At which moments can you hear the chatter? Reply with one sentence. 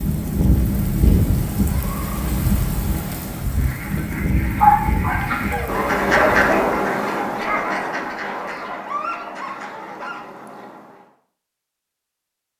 You can't hear the chatter here.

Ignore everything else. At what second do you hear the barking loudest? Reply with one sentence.
The loudest moment of the barking is at 5 seconds.